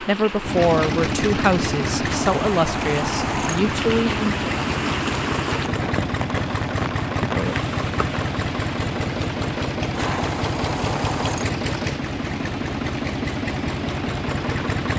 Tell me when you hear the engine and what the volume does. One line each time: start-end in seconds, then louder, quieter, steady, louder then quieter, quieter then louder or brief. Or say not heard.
0.0-14.9 steady.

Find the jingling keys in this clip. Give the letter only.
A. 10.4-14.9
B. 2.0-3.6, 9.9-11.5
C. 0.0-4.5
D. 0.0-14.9
B.